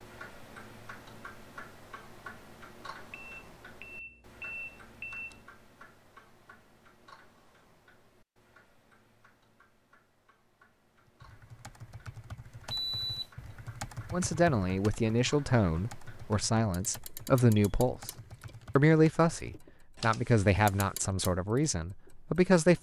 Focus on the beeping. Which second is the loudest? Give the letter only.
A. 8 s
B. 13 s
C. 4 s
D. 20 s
B.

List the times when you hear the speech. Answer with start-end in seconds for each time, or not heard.
14.1-18.1, 18.8-22.7.